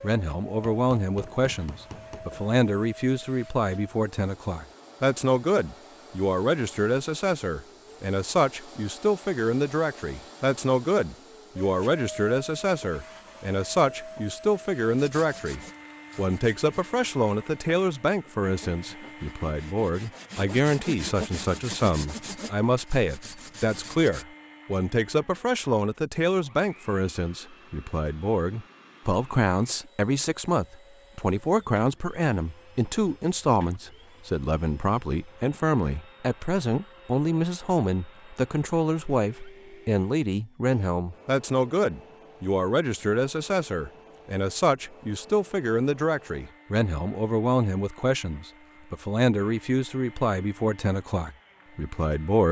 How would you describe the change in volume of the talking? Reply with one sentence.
The volume of the talking stays about the same.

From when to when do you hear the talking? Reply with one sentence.
You can hear the talking from 0.0 to 52.4 s.